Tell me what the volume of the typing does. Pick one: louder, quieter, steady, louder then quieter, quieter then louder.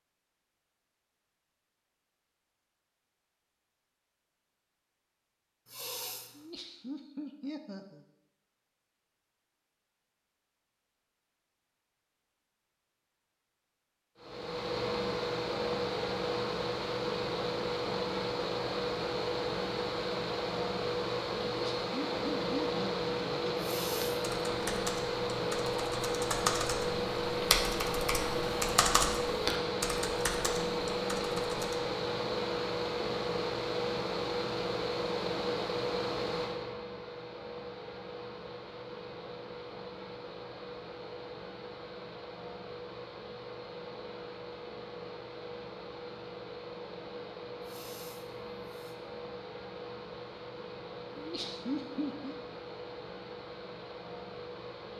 louder then quieter.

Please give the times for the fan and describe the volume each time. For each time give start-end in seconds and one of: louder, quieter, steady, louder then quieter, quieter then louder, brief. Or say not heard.
14.2-54.9 quieter.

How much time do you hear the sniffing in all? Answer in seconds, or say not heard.
3 s.